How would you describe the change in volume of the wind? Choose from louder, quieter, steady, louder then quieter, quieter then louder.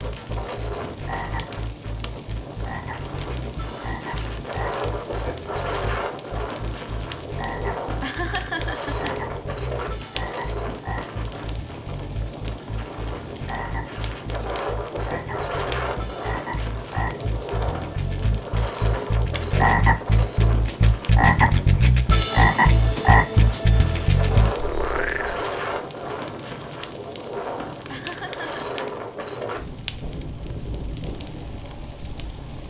steady.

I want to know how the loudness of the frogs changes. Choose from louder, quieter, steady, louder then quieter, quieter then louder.
louder.